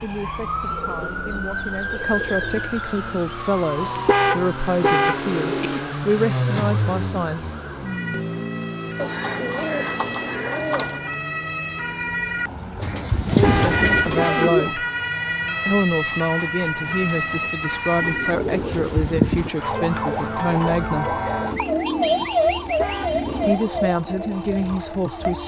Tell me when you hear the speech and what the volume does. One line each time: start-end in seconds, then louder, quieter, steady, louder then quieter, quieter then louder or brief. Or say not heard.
0.0-7.5 louder
13.3-14.8 brief
15.7-21.1 steady
23.4-25.4 brief.